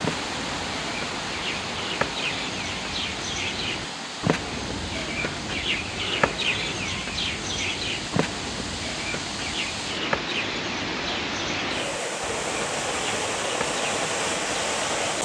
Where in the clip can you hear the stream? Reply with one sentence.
The stream can be heard from 0.0 to 15.2 s.